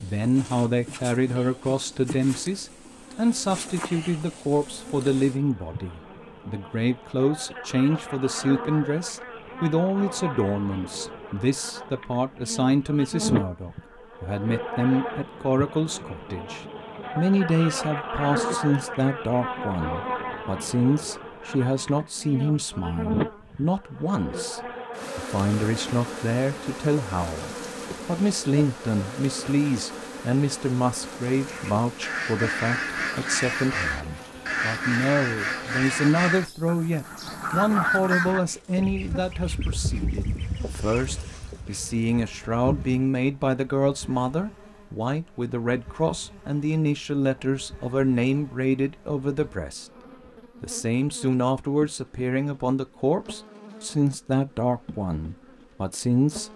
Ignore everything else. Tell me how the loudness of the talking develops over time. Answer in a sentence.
The volume of the talking stays about the same.